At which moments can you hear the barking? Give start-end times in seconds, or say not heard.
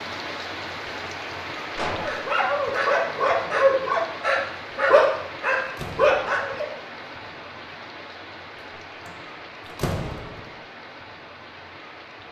1.9-6.7.